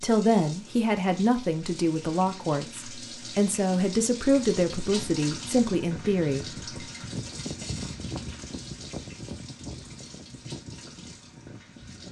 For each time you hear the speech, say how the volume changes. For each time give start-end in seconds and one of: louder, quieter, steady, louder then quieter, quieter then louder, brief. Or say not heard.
0.0-6.5 steady.